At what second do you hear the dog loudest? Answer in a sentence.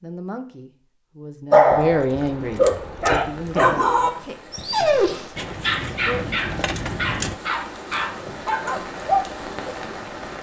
The loudest moment of the dog is at 2 seconds.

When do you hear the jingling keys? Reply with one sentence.
You can hear the jingling keys from 1.7 to 3.3 s and from 5.3 to 7.3 s.